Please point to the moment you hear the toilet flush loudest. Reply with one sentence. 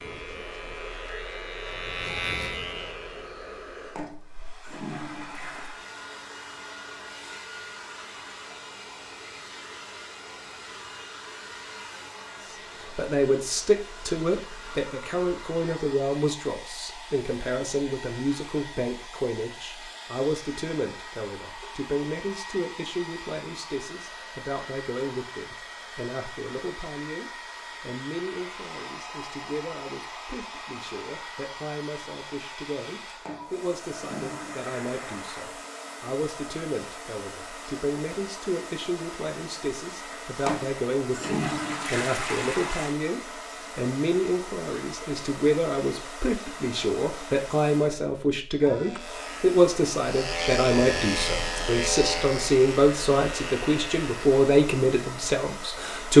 The volume of the toilet flush peaks at 42 seconds.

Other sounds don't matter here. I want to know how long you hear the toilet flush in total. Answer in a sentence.
You can hear the toilet flush for 7 seconds altogether.